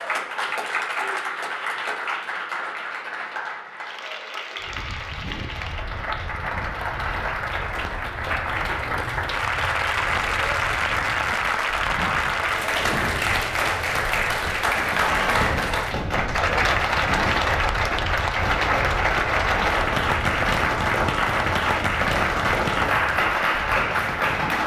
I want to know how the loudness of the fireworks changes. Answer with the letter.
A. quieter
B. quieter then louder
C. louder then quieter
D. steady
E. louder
D.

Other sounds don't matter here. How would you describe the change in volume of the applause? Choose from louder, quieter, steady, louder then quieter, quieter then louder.
louder.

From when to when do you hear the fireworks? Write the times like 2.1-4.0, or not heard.
14.7-24.6.